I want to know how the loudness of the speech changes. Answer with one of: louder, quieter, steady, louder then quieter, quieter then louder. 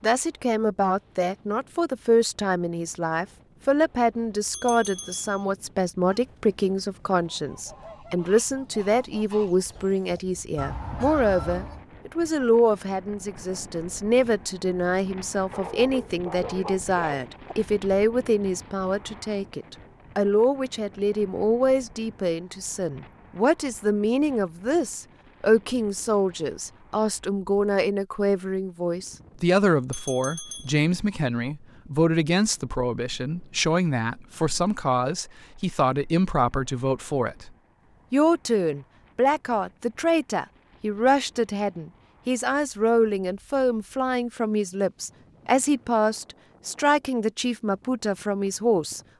steady.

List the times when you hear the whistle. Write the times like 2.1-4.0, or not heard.
not heard.